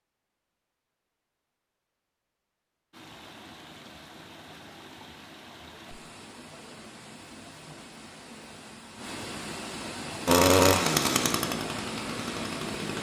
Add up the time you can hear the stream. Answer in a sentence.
The stream can be heard for 10 seconds in total.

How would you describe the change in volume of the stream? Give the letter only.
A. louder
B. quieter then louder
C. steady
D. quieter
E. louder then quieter
A.